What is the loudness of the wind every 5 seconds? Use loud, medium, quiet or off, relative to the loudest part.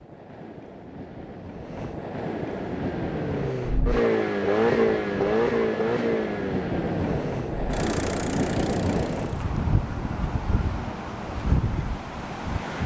medium, loud, loud.